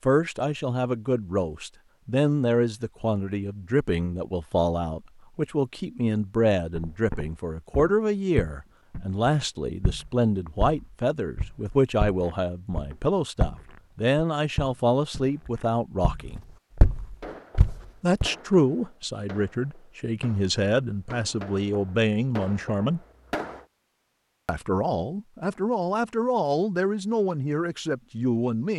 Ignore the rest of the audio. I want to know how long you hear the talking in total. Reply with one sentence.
The talking can be heard for 26 seconds in total.